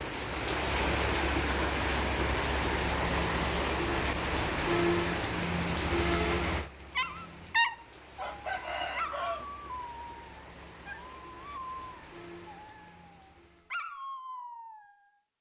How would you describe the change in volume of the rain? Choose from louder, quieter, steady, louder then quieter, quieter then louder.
quieter.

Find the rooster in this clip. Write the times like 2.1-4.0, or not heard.
8.2-9.4.